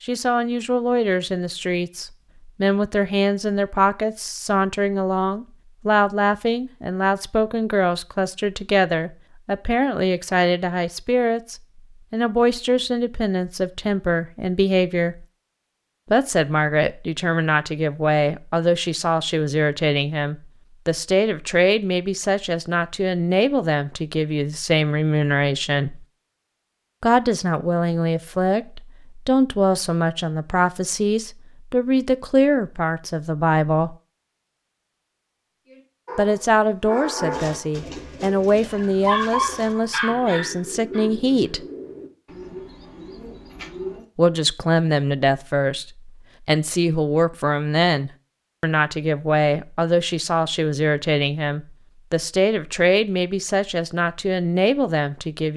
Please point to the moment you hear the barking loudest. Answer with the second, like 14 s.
39 s.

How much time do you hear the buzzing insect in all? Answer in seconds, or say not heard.
not heard.